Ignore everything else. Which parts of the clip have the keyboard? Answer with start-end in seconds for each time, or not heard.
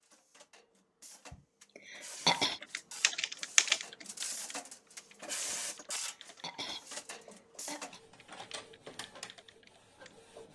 2.3-10.4.